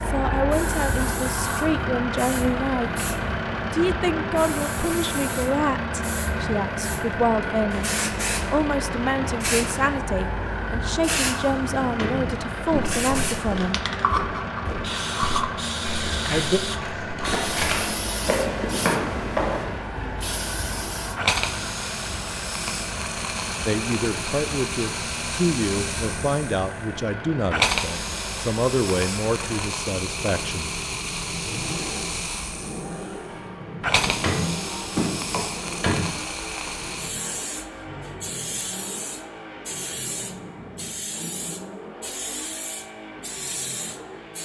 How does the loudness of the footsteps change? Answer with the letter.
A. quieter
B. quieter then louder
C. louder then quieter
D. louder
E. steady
D.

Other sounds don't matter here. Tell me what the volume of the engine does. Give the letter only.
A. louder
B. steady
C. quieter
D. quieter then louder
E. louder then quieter
C.